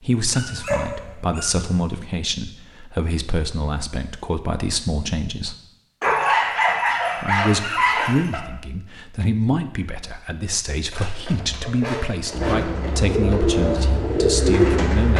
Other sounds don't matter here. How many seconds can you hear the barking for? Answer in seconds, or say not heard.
6 s.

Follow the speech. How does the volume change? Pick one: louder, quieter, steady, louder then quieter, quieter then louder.
steady.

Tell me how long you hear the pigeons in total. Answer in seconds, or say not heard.
3 s.